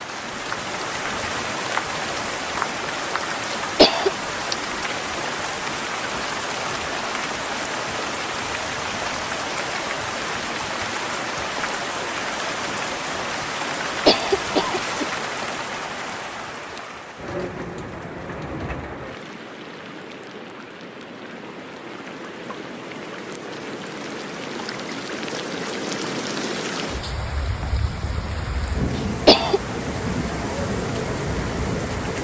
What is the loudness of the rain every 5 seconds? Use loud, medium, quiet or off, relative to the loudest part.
loud, loud, loud, medium, medium, loud, loud.